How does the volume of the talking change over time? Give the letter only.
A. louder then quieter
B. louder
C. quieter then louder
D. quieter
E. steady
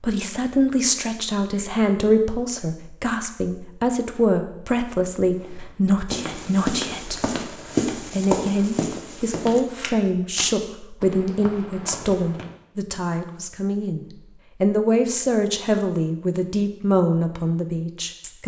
E.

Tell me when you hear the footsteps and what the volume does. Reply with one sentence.
The footsteps can be heard from 5.3 to 12.5 s, getting quieter.